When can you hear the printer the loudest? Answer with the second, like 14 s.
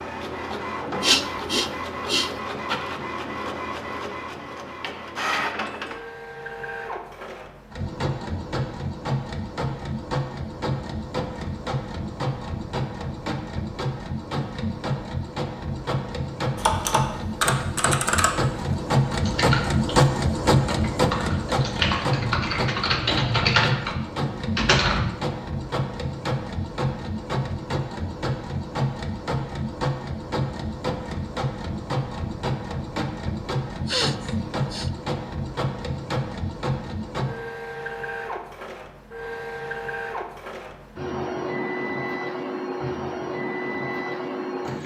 20 s.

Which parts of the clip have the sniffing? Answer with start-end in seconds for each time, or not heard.
1.0-2.3, 33.9-34.9.